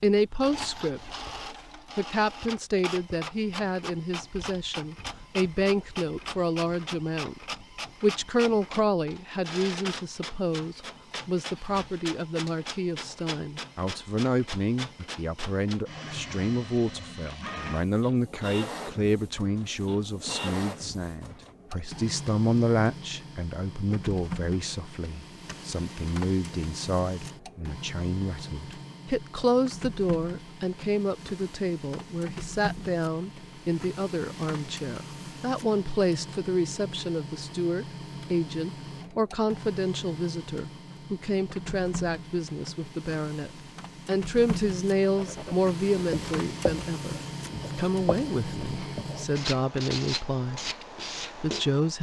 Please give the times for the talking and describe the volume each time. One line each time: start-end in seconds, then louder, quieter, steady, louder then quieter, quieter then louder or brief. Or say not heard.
0.0-1.1 brief
1.9-50.7 steady
51.4-51.9 brief.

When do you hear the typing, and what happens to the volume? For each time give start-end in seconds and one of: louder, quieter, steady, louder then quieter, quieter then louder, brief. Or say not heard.
not heard.